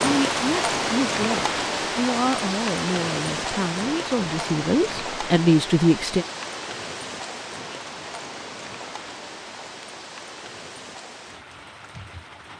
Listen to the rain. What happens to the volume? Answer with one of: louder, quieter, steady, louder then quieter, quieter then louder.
quieter.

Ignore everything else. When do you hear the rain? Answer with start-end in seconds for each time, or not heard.
0.0-12.5.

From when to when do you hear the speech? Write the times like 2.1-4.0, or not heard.
0.0-6.2.